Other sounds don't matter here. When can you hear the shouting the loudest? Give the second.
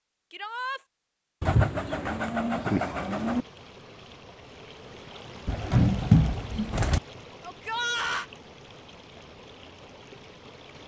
8 s.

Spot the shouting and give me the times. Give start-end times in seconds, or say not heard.
0.3-0.8, 7.4-8.2.